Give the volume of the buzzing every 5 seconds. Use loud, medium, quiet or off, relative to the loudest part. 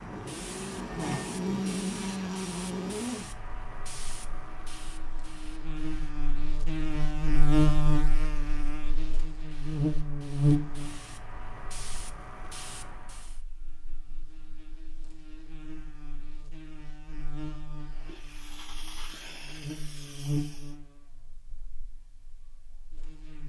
loud, loud, loud, quiet, medium.